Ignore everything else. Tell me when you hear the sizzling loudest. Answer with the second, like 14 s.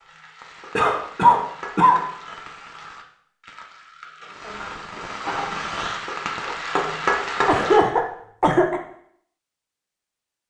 7 s.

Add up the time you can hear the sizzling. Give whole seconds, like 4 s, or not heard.
8 s.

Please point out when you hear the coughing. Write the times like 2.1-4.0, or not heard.
0.8-2.0, 7.5-8.8.